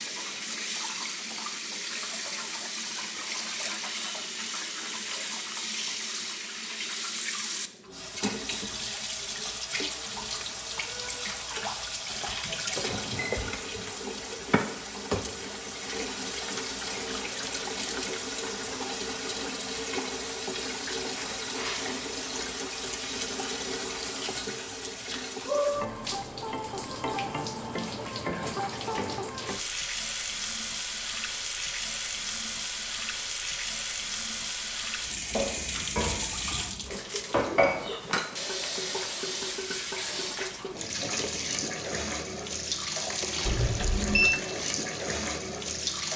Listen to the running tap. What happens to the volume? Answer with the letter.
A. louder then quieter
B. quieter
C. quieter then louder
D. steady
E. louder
D.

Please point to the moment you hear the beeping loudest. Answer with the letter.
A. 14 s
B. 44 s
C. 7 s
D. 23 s
B.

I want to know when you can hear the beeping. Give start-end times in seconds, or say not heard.
12.8-13.4, 43.5-44.4.